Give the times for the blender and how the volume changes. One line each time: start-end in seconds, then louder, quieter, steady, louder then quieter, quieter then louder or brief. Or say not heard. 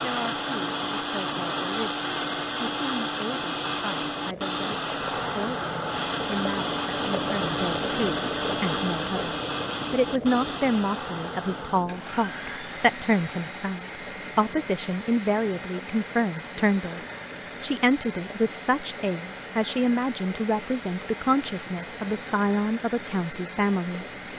0.0-24.3 quieter.